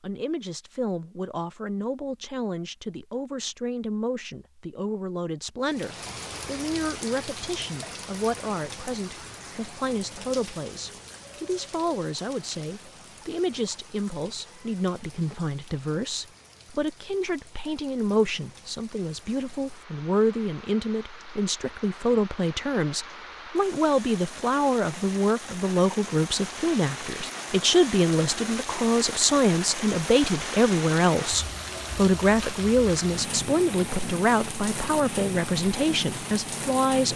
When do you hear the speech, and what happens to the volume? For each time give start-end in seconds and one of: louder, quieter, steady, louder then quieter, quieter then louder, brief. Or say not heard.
0.0-37.1 louder.